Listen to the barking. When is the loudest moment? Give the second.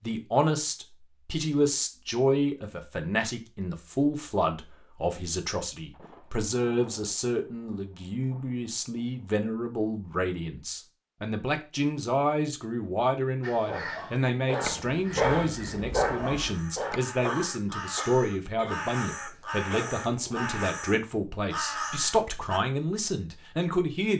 15 s.